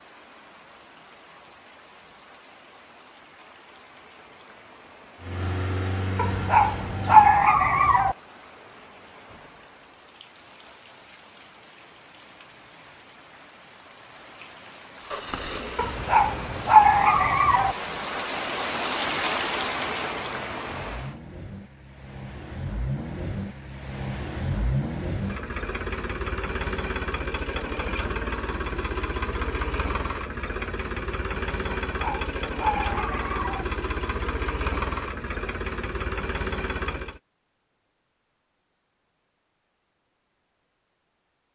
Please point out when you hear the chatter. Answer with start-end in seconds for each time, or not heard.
not heard.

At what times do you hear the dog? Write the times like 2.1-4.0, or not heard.
6.2-8.2, 15.8-17.8, 31.9-33.6.